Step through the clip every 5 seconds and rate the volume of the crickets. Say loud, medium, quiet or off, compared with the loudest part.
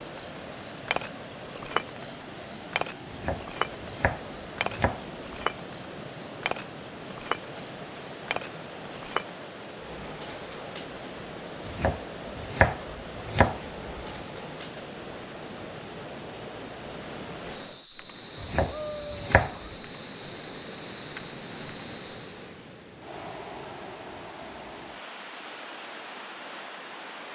loud, loud, loud, medium, medium, off.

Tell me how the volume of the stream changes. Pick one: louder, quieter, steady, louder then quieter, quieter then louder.
steady.